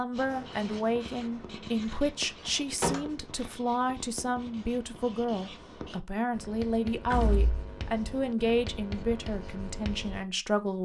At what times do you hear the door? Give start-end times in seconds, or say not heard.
2.5-3.0, 7.1-7.6.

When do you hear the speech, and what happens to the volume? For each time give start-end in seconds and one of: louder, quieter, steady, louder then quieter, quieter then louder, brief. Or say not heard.
0.0-10.8 steady.